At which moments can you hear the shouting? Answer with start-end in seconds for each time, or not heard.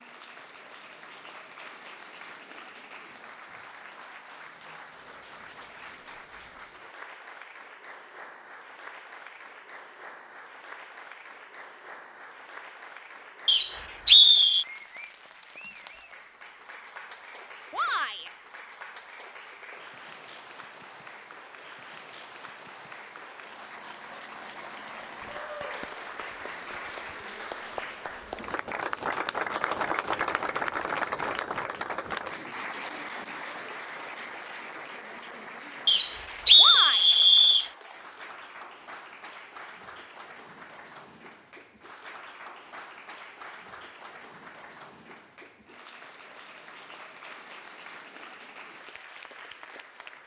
17.7-18.3, 36.5-37.1.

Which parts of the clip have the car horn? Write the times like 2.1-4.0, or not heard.
not heard.